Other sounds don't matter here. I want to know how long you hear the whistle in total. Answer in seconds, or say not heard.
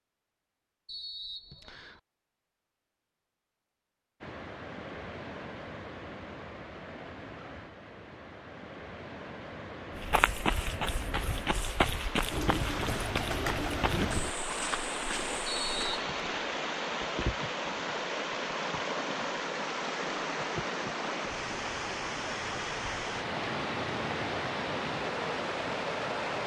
2 s.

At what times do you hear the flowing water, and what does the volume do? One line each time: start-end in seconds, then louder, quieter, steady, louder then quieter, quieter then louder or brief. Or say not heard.
4.2-26.4 louder.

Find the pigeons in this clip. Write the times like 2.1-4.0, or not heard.
12.3-14.3.